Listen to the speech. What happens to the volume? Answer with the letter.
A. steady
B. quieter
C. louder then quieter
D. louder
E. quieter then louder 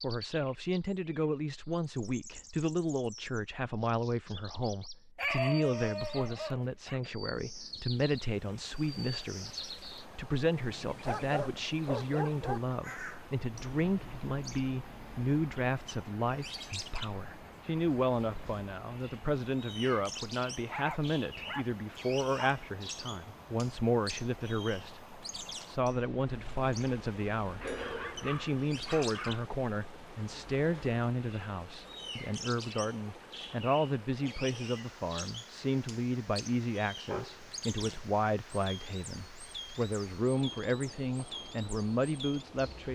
A.